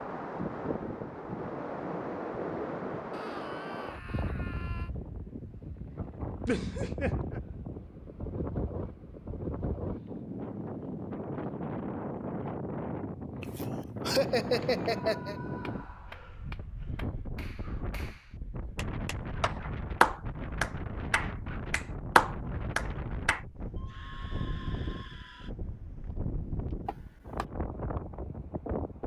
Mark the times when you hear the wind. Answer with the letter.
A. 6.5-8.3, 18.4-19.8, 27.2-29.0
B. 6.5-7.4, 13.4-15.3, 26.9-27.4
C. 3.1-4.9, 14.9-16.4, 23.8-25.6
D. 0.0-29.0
D.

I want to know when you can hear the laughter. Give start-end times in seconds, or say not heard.
6.5-7.4, 13.4-15.3, 26.9-27.4.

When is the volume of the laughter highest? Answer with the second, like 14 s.
14 s.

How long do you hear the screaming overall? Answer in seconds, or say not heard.
5 s.